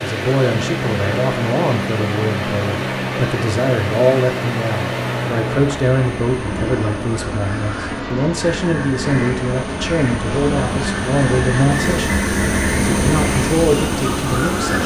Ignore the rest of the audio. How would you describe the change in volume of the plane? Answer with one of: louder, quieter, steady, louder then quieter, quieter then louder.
steady.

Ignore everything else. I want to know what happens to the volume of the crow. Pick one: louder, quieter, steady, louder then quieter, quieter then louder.
louder.